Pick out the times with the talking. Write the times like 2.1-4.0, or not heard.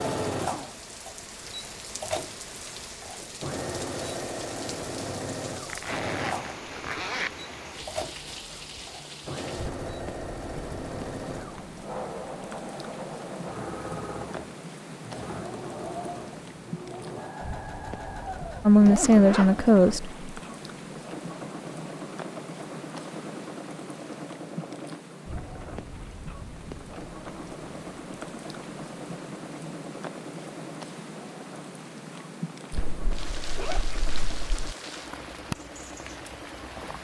18.6-20.1.